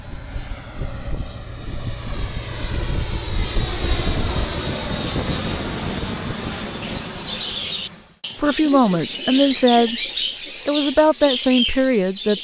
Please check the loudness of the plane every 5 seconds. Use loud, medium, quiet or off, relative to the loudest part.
loud, loud, off.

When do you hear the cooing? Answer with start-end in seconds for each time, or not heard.
6.8-12.3.